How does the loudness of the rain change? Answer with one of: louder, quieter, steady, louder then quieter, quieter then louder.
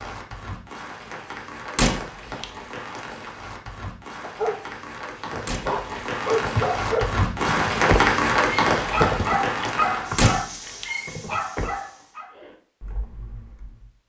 louder then quieter.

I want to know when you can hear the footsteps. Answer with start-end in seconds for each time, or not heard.
not heard.